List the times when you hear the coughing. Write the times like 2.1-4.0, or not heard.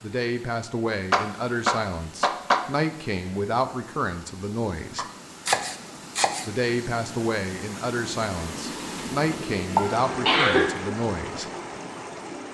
9.8-10.7.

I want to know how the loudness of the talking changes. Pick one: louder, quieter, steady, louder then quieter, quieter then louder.
steady.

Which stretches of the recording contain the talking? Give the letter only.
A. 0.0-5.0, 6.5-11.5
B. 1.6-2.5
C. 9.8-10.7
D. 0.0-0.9
A.